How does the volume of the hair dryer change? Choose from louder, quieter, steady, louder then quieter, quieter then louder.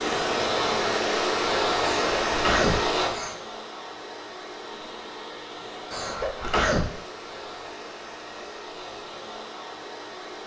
quieter.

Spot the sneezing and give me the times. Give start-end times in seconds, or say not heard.
1.8-3.4, 5.9-6.9.